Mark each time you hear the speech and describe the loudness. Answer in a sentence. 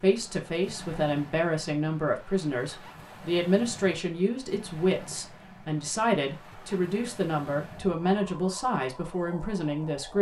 You can hear the speech from 0.0 to 10.1 s, at a steady volume.